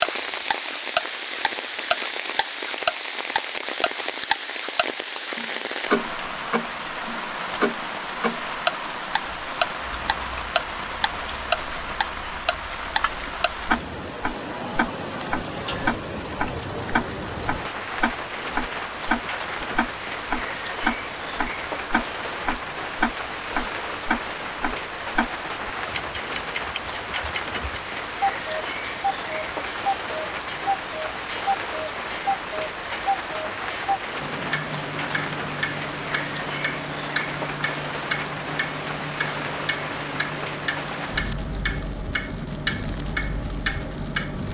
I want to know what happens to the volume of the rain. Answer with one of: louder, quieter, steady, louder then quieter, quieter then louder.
steady.